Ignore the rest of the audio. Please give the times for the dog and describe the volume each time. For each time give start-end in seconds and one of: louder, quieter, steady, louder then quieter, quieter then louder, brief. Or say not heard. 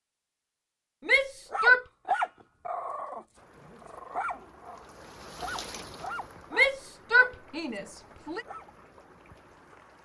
1.5-8.7 quieter.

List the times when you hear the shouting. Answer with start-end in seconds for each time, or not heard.
1.1-1.9, 6.5-8.4.